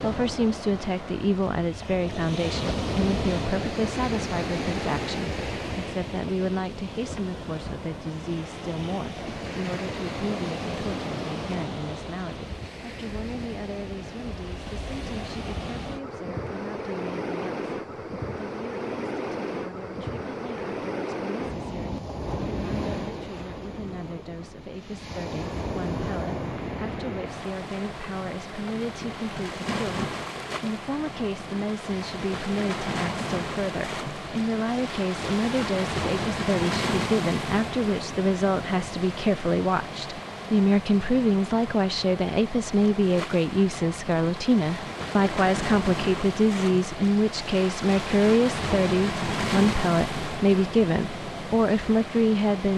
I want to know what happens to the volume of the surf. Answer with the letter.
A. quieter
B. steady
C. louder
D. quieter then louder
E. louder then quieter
B.